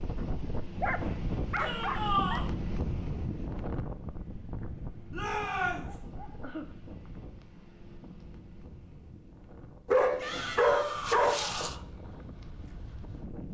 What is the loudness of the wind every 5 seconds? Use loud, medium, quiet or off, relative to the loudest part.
loud, medium, medium.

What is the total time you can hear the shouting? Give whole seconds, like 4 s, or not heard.
3 s.